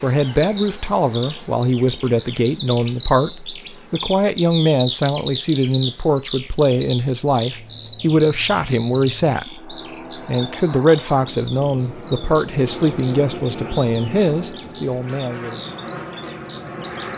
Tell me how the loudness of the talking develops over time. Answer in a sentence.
The volume of the talking stays about the same.